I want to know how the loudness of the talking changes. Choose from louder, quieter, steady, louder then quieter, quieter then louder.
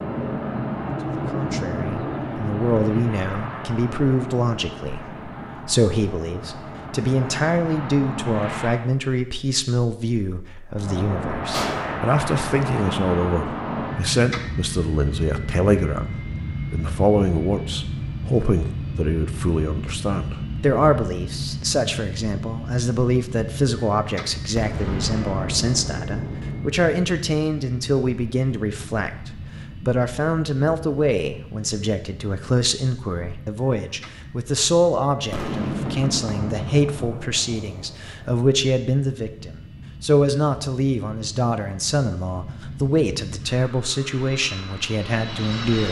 steady.